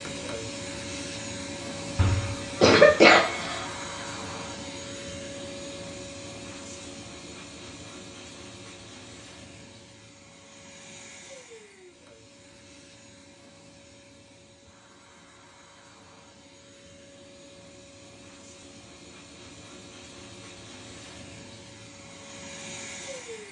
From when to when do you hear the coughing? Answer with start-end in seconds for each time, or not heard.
1.9-3.6.